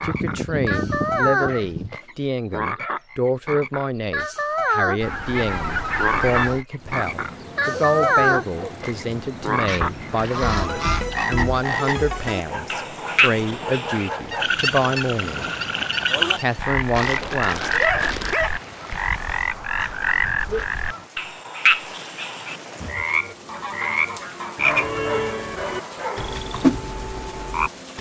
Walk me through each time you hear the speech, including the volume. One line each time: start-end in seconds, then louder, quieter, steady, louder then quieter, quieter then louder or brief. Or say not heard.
0.0-15.5 steady
16.4-17.7 brief.